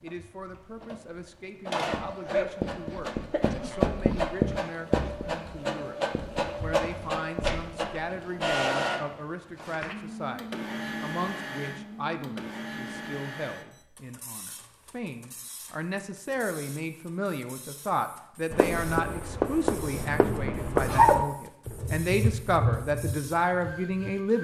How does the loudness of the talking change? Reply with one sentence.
The loudness of the talking goes up.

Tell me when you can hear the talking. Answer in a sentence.
You can hear the talking from 0.0 to 6.0 s and from 6.6 to 24.4 s.